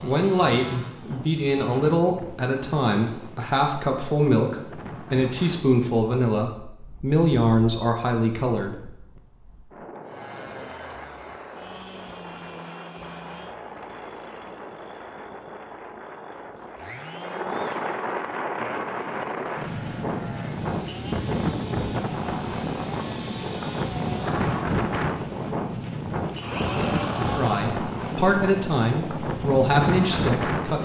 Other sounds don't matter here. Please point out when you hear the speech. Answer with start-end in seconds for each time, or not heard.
0.0-8.8, 27.1-30.7.